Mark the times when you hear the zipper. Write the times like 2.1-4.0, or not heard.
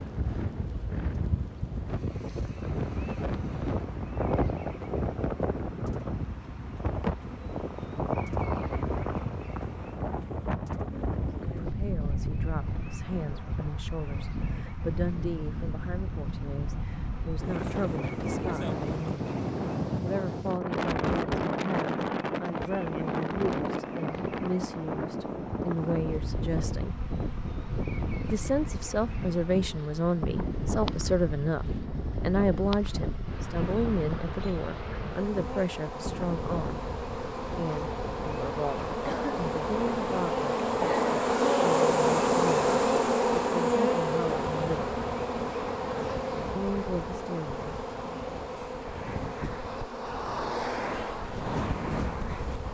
not heard.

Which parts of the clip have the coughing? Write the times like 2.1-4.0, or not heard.
39.0-39.5.